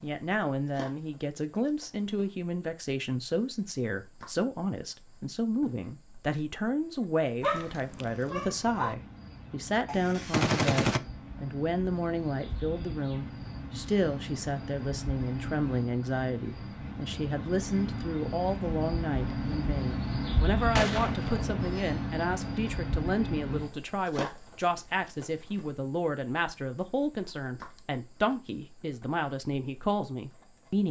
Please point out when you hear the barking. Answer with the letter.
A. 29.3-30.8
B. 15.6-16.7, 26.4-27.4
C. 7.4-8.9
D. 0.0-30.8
C.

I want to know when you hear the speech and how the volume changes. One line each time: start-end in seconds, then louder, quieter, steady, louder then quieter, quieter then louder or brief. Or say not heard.
0.0-30.8 steady.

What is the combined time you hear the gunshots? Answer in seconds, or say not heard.
2 s.